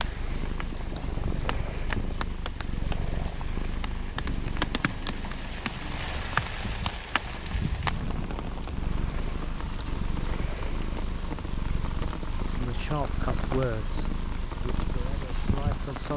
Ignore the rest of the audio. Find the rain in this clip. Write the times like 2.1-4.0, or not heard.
0.0-16.1.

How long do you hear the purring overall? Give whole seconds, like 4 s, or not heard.
16 s.